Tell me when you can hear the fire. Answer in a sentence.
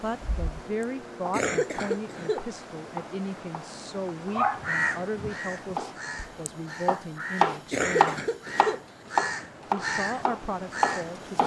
The fire can't be heard in this clip.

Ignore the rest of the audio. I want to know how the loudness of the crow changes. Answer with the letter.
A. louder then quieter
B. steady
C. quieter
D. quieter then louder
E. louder
E.